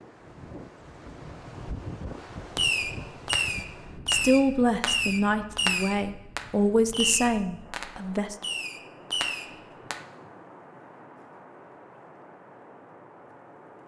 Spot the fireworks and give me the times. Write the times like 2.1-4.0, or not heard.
2.5-10.0.